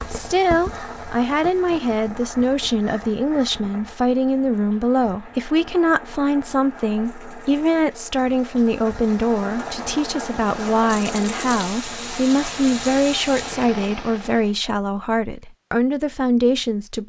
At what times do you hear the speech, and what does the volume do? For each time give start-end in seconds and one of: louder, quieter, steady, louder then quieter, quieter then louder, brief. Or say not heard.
0.1-17.0 steady.